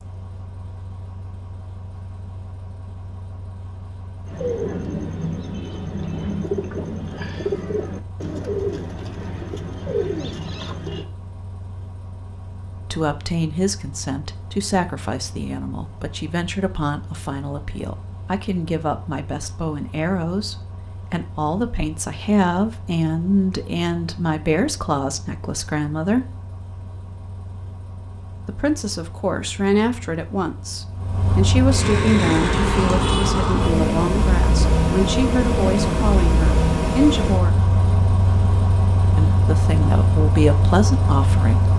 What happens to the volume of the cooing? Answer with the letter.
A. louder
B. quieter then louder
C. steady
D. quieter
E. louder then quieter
C.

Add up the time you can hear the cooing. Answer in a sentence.
You can hear the cooing for 7 seconds altogether.